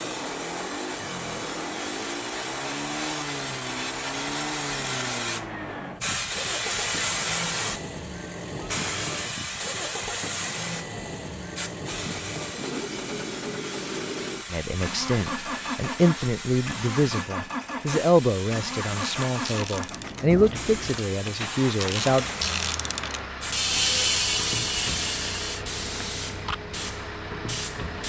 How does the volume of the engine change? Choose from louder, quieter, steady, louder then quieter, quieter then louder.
steady.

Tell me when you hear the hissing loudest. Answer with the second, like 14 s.
7 s.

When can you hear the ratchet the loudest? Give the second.
24 s.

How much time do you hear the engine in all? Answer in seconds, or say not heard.
28 s.